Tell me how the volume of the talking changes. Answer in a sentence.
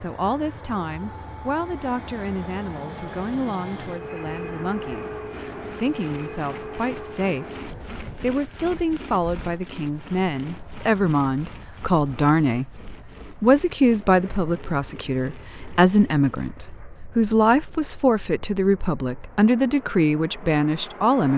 The volume of the talking goes up.